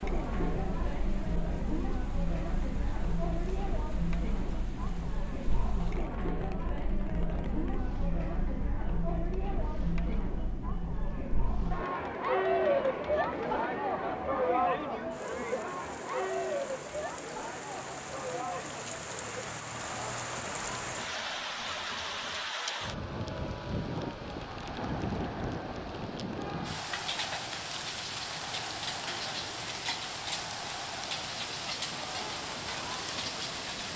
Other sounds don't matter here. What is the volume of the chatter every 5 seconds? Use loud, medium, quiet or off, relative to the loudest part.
medium, medium, loud, medium, quiet, quiet, quiet.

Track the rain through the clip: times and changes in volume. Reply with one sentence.
You can hear the rain from 0.0 to 33.9 s, getting louder.